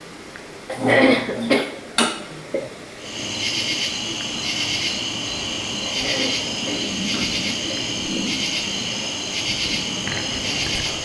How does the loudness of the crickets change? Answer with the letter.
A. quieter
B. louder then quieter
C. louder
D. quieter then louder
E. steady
E.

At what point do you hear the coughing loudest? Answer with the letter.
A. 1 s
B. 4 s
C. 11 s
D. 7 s
A.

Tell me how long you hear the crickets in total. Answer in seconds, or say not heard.
8 s.